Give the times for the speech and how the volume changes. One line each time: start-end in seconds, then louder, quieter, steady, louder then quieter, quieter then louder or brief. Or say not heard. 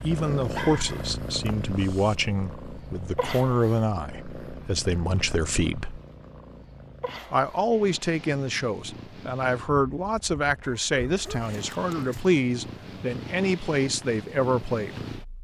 0.0-6.0 steady
7.3-15.0 steady.